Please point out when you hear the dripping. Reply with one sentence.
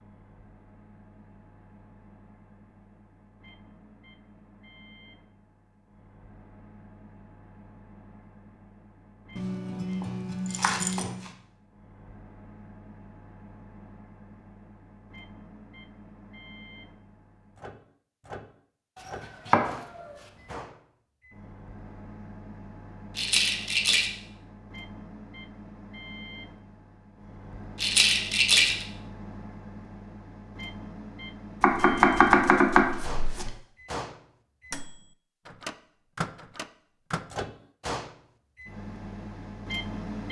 The dripping can't be heard in this clip.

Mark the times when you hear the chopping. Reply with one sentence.
The chopping can be heard from 9.3 to 11.3 s, from 19.0 to 20.1 s and from 31.6 to 33.5 s.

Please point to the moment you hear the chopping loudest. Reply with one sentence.
The volume of the chopping peaks at 32 seconds.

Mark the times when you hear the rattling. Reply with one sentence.
The rattling can be heard from 10.4 to 11.1 s, from 23.1 to 24.1 s and from 27.8 to 28.9 s.